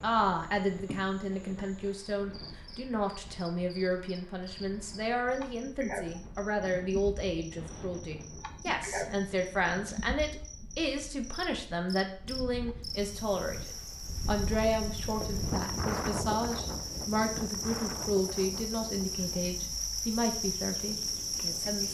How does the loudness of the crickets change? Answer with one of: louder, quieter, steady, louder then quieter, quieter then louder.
louder.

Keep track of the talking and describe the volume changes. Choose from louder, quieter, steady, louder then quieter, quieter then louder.
steady.